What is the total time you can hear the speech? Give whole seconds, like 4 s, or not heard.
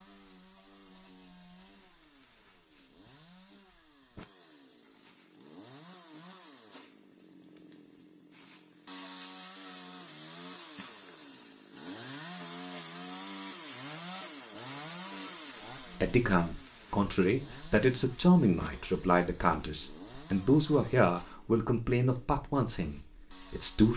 8 s.